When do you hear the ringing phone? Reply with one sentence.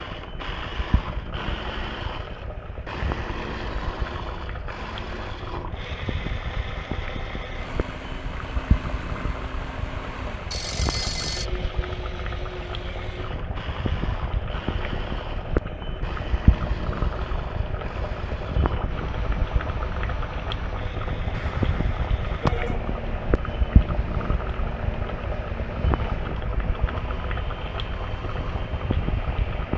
You can hear the ringing phone from 10.5 to 11.5 s and from 21.3 to 22.8 s.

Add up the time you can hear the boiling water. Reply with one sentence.
The boiling water can be heard for 30 seconds in total.